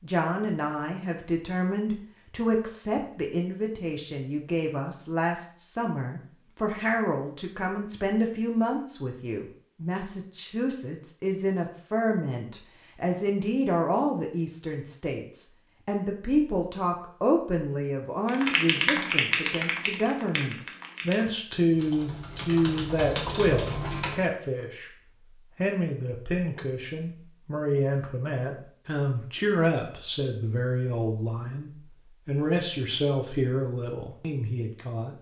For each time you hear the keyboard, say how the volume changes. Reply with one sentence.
The keyboard can be heard from 18.2 to 24.2 s, getting quieter then louder.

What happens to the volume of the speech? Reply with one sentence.
The loudness of the speech stays about the same.